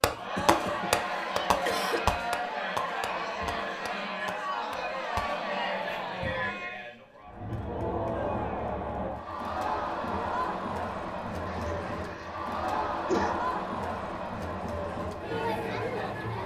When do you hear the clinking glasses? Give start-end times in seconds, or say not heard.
not heard.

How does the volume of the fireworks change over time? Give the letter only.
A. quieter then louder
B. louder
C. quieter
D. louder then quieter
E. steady
C.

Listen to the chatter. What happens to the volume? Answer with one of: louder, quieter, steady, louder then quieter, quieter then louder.
steady.